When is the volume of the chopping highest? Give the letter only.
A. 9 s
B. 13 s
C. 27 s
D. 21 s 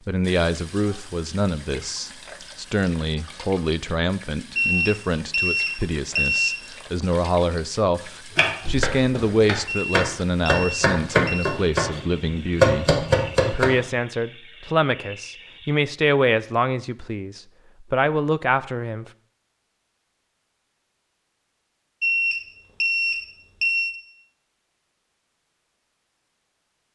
B.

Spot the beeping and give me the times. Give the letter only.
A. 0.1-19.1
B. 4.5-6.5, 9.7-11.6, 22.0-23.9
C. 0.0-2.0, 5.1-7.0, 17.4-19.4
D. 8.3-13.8
B.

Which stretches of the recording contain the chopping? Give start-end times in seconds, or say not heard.
8.3-13.8.